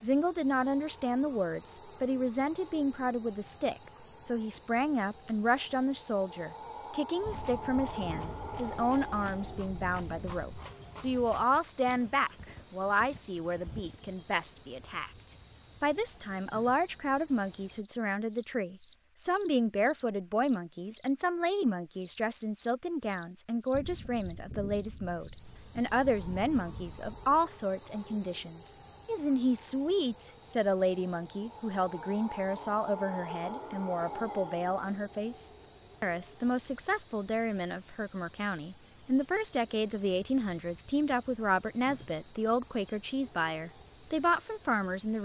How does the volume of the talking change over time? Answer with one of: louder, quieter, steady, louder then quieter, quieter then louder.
steady.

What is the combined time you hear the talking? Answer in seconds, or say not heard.
45 s.